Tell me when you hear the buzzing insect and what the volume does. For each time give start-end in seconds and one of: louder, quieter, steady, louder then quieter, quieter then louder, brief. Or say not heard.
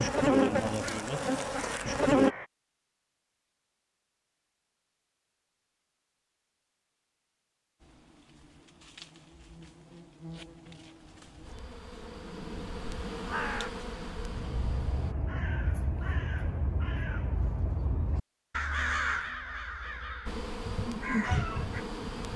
0.0-2.4 brief
7.8-15.2 louder
20.2-22.3 brief.